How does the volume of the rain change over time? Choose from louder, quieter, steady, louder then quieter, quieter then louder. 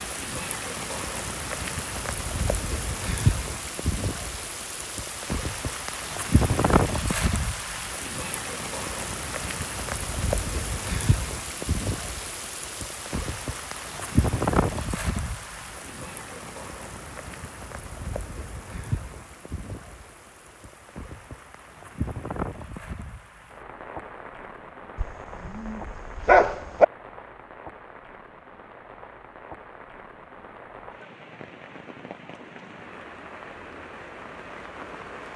quieter.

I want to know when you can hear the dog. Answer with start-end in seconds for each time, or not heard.
24.9-26.9.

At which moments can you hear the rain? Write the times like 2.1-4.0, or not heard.
0.0-35.3.